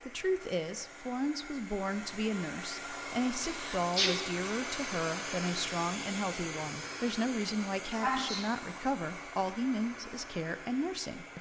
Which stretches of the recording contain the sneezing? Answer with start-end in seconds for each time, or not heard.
3.5-4.2, 8.0-8.4.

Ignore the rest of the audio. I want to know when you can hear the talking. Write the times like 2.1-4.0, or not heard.
0.0-11.3.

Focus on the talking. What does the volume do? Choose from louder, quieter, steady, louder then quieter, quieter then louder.
steady.